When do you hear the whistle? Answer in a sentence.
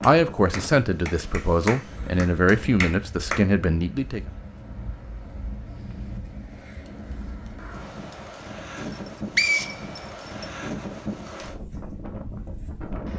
The whistle can be heard from 8.8 to 10.4 s.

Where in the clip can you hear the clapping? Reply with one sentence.
You can hear the clapping from 0.0 to 3.4 s.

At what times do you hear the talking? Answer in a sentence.
You can hear the talking from 0.0 to 4.2 s.